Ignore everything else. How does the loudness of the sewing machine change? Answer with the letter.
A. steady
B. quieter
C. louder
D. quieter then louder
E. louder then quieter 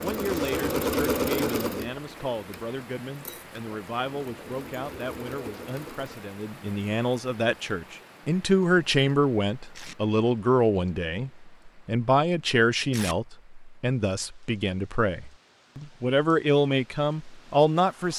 D.